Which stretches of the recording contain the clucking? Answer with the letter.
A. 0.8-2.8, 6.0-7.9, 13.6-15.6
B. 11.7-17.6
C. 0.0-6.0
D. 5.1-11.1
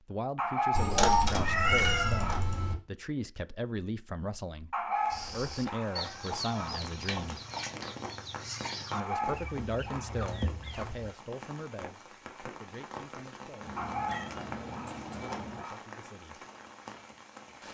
D.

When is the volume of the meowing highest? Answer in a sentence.
The loudest moment of the meowing is at 1 second.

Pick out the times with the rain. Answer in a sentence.
You can hear the rain from 5.0 to 17.6 s.